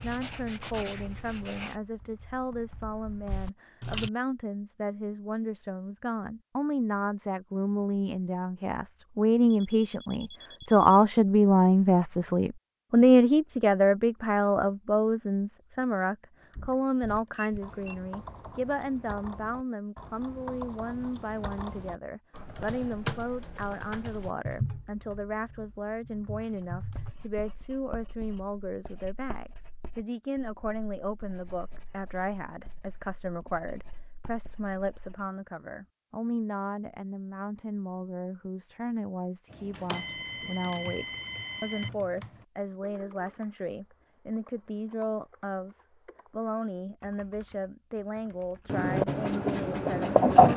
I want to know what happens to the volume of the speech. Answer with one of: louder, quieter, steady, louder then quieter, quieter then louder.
louder then quieter.